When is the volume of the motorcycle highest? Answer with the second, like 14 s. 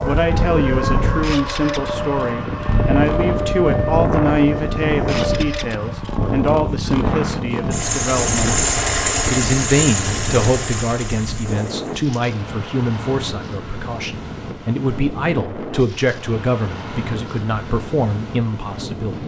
9 s.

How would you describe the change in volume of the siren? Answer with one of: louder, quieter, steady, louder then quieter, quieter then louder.
steady.